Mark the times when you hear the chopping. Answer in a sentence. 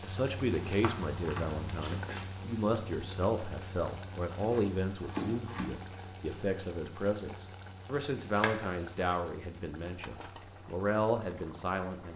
You can hear the chopping from 0.5 to 2.2 s, from 4.3 to 6.0 s and from 8.2 to 9.2 s.